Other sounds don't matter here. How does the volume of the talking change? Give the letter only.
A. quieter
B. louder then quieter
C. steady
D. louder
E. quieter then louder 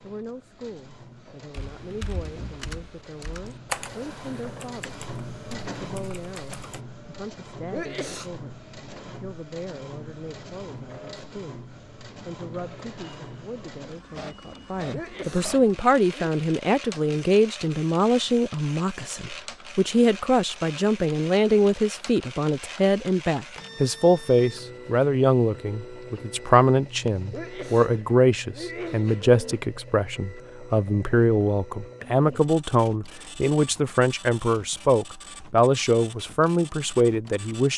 D.